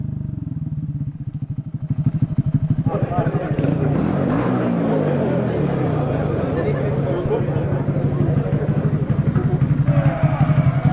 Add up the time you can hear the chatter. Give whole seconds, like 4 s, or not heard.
8 s.